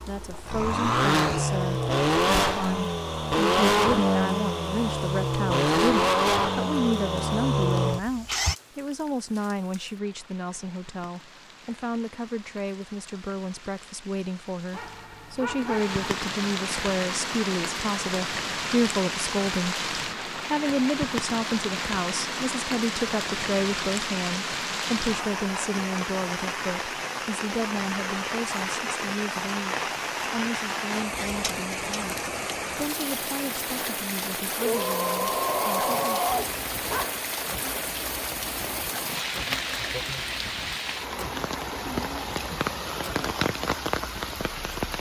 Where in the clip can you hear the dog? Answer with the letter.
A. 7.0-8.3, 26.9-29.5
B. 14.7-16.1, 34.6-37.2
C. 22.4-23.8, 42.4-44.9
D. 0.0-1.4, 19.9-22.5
B.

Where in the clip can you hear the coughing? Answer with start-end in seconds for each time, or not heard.
not heard.